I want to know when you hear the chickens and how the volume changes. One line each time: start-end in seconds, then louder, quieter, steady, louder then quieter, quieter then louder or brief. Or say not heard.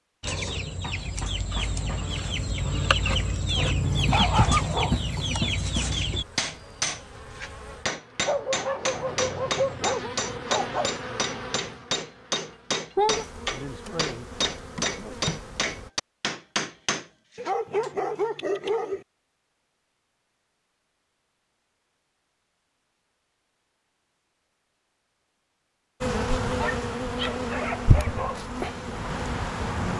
0.2-6.2 louder.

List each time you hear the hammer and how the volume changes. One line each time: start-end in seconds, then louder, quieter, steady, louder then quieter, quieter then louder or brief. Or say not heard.
5.9-17.9 steady.